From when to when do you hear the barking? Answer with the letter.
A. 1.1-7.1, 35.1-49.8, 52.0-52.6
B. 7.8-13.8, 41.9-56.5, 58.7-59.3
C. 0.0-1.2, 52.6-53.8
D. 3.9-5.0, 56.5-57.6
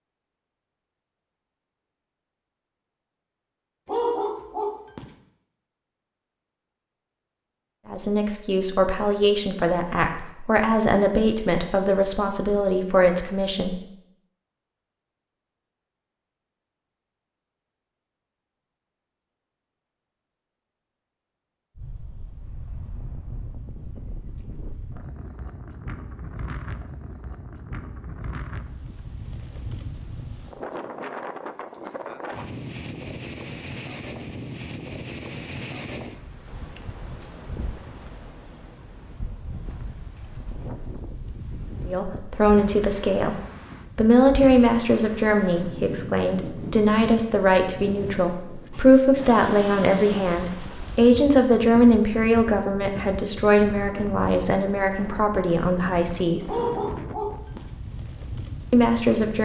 D.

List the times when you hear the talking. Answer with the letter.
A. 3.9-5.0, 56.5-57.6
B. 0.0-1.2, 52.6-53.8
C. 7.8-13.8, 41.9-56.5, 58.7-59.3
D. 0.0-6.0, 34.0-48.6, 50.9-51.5
C.